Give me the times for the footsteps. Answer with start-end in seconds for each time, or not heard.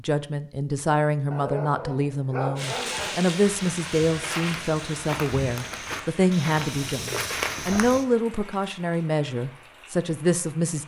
3.4-8.1.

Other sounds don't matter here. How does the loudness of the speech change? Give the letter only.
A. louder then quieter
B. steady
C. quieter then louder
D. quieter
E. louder
B.